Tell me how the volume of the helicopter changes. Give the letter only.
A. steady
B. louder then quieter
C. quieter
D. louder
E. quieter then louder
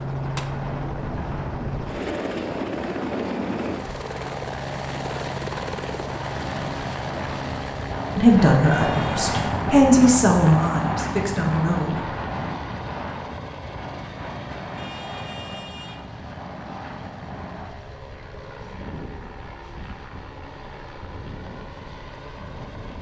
C.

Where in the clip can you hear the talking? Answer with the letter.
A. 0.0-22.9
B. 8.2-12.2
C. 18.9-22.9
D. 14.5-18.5
B.